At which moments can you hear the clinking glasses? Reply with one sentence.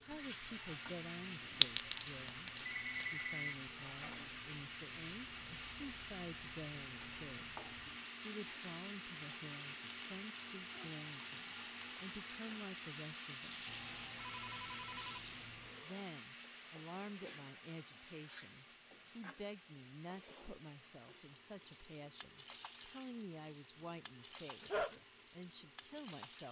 The clinking glasses can be heard from 1.6 to 3.1 s.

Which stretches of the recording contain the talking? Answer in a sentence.
You can hear the talking from 0.0 to 13.7 s and from 15.8 to 26.4 s.